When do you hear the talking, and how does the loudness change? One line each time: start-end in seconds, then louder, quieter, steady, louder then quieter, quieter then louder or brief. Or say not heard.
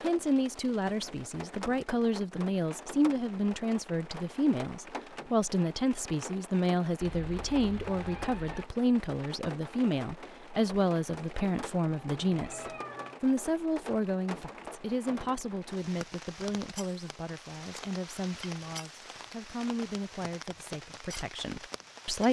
0.0-22.2 quieter.